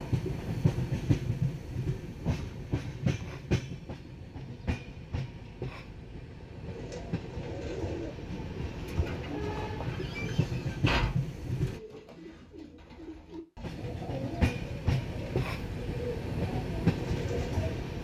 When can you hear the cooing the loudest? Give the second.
11 s.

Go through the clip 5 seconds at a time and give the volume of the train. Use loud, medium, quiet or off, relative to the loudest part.
loud, medium, loud, loud.